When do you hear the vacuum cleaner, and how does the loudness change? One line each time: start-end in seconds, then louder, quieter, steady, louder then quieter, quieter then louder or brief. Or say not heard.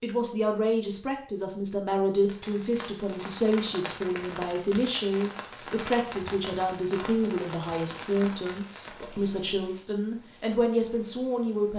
not heard.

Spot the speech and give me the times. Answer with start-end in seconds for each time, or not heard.
0.0-11.7.